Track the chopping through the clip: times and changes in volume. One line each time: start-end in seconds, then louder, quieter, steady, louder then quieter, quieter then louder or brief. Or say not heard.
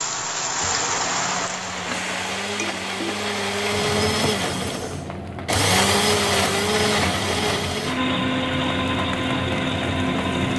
not heard.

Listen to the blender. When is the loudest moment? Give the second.
6 s.